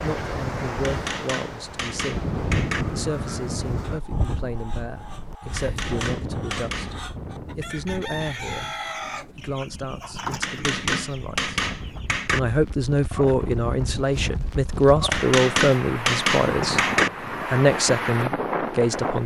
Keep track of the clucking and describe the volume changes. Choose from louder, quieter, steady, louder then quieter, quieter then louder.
louder.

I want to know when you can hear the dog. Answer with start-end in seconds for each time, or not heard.
not heard.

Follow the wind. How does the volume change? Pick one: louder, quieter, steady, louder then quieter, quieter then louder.
quieter then louder.